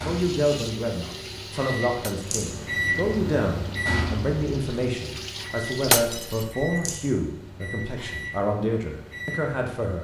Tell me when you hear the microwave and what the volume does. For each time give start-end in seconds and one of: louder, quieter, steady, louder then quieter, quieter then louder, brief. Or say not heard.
0.0-10.0 louder then quieter.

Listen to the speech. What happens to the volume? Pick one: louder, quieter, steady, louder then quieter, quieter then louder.
steady.